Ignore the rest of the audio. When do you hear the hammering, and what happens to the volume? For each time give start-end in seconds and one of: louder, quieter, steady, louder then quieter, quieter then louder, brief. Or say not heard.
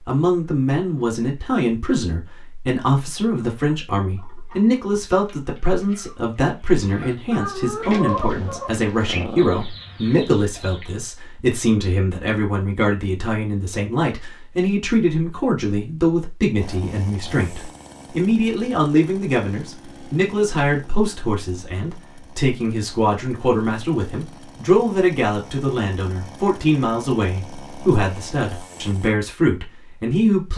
not heard.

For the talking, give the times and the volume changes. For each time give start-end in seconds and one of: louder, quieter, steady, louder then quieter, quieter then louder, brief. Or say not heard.
0.1-30.5 steady.